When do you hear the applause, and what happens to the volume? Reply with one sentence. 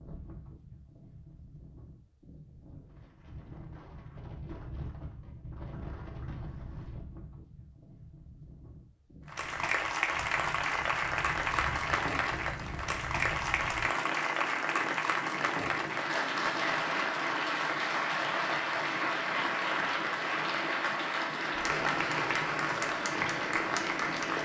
The applause can be heard from 9.2 to 24.3 s, at a steady volume.